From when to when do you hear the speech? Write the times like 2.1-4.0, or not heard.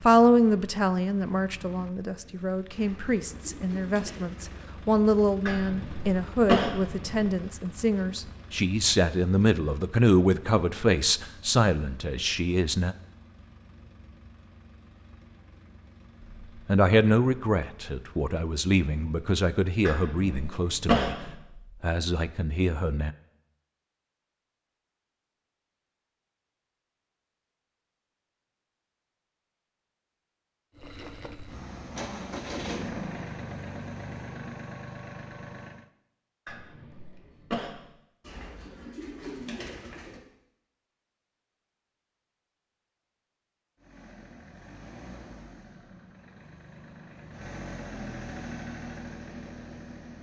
0.0-12.9, 16.6-23.1.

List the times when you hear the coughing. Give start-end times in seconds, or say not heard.
5.5-7.3, 19.9-21.3, 36.5-37.9.